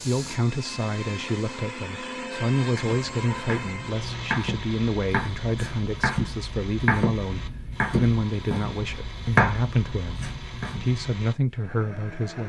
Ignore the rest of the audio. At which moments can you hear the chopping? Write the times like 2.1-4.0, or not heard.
2.8-11.1.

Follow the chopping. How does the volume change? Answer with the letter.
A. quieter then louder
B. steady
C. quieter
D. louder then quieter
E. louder
E.